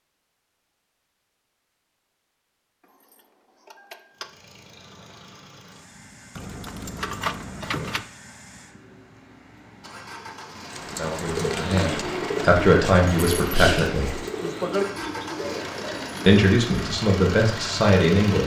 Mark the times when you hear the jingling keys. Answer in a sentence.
The jingling keys can be heard from 2.9 to 4.2 s, from 6.3 to 8.1 s and from 13.1 to 14.2 s.